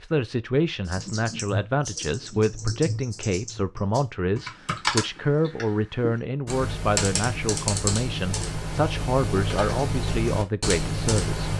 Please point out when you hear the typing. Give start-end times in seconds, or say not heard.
0.8-11.5.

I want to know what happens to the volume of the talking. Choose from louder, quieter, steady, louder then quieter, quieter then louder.
steady.